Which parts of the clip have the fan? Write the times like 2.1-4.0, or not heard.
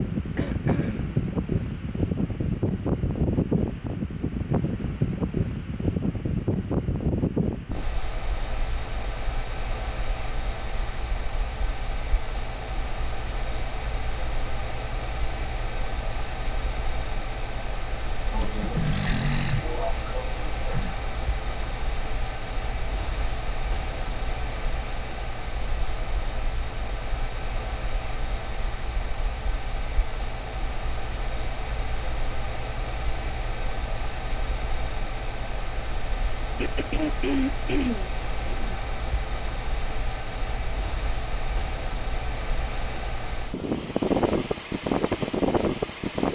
0.0-46.3.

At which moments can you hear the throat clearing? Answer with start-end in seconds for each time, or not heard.
0.1-1.2, 18.3-20.9, 36.5-38.8.